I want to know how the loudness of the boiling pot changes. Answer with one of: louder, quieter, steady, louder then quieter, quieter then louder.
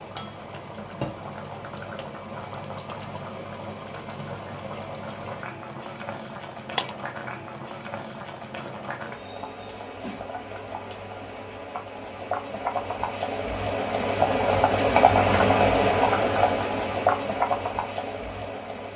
louder.